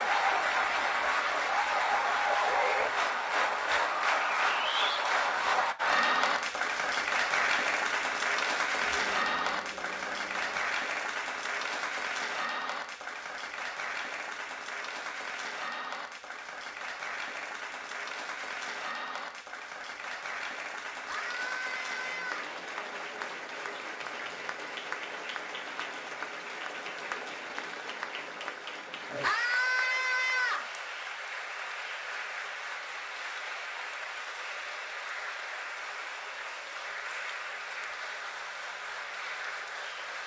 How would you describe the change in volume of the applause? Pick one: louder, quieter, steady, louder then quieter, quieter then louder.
quieter.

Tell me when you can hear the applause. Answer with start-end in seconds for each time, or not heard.
0.0-40.2.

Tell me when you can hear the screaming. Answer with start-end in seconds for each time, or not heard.
8.8-10.6, 21.1-22.4, 29.2-30.7.